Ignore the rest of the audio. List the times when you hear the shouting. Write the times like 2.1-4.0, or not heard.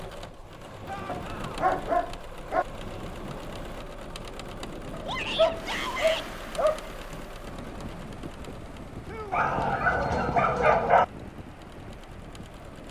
0.8-1.5, 5.0-6.2, 9.1-9.7.